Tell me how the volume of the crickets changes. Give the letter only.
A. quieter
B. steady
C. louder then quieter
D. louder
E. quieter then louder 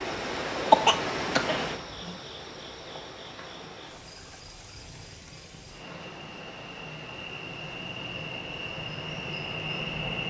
E.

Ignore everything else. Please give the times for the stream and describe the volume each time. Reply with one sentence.
You can hear the stream from 0.0 to 10.2 s, getting quieter.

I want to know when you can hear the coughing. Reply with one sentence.
The coughing can be heard from 0.7 to 2.1 s.